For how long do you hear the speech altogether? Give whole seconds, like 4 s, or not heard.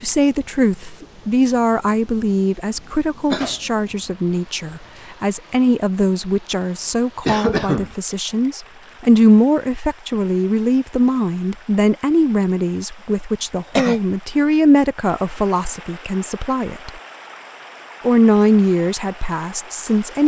19 s.